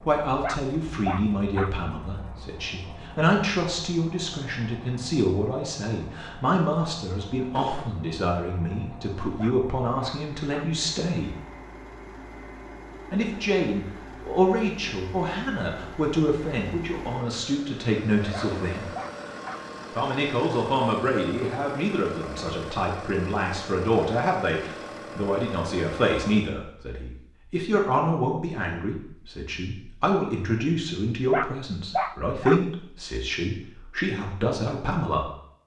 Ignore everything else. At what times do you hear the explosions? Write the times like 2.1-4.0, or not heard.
7.5-8.0, 18.4-18.8.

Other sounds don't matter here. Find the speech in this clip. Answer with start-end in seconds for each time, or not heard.
0.1-11.3, 13.1-18.9, 19.9-35.3.